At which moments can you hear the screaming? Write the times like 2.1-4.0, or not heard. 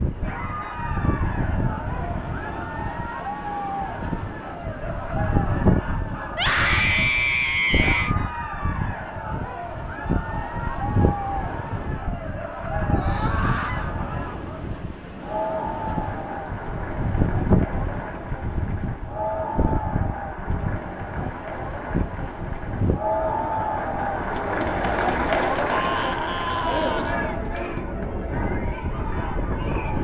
6.3-8.2, 12.8-13.9, 25.7-27.1.